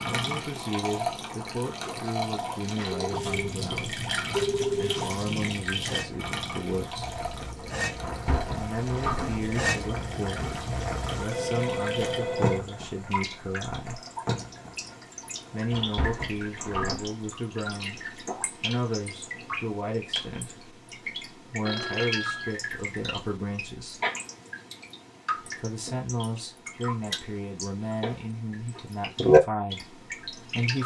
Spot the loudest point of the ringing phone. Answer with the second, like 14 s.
5 s.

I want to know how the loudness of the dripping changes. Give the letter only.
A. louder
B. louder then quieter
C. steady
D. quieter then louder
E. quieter
D.